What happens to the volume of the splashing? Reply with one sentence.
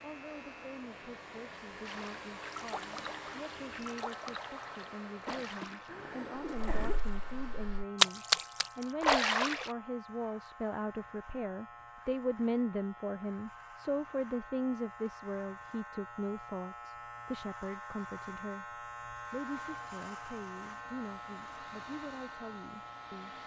The volume of the splashing goes down, then up.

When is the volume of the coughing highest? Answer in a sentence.
The loudest moment of the coughing is at 7 seconds.